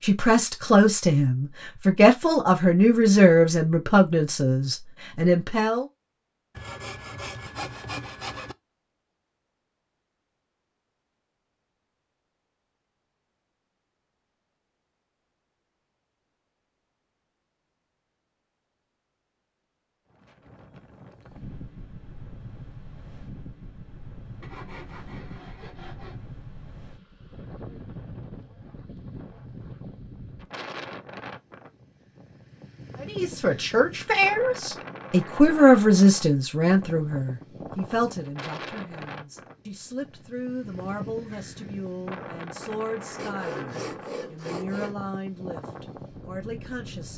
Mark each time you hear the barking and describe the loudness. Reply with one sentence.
You can't hear the barking here.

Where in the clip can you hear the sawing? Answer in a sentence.
You can hear the sawing from 6.5 to 8.6 s, from 24.4 to 26.2 s and from 43.1 to 45.0 s.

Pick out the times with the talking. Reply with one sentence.
The talking can be heard from 0.0 to 5.8 s and from 33.0 to 47.1 s.